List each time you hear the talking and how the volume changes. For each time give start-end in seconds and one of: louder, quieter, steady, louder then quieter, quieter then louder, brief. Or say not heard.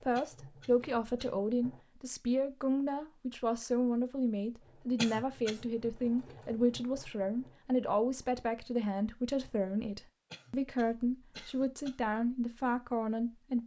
0.0-13.6 steady.